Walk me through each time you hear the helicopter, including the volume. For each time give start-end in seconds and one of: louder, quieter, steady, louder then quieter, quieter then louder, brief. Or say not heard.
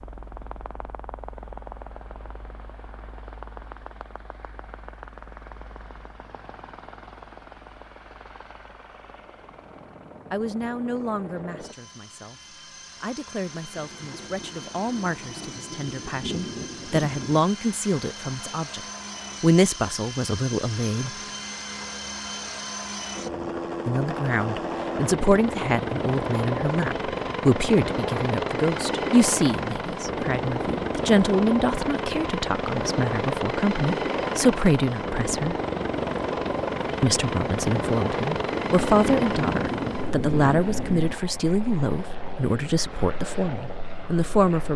0.0-44.7 louder.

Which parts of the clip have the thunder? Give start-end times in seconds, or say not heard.
13.8-17.4, 36.5-41.2.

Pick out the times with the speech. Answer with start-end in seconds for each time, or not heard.
10.3-18.8, 19.4-21.1, 23.9-35.5, 37.0-44.7.